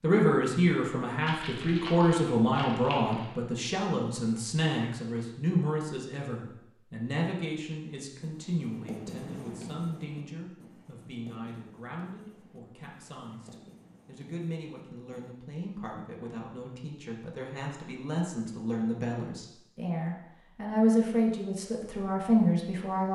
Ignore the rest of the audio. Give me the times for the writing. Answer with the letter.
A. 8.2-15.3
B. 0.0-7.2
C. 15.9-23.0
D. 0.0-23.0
A.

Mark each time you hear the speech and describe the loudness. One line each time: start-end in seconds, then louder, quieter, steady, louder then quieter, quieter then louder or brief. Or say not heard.
0.0-23.0 quieter then louder.